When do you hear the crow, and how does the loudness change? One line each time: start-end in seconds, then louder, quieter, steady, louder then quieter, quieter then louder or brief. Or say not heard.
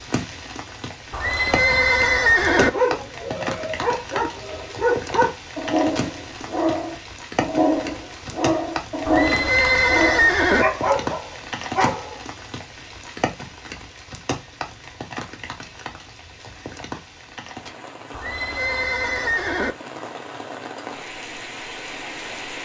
not heard.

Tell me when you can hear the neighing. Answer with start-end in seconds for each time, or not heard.
1.1-2.7, 9.1-10.7, 18.1-19.8.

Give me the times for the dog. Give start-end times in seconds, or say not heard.
2.5-12.2.